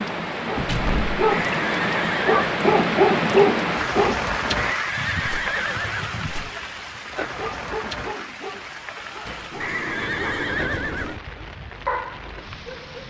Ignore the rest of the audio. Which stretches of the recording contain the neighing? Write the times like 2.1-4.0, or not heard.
1.3-2.4, 4.5-6.3, 9.6-11.2.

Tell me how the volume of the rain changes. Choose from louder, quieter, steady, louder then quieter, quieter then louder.
quieter.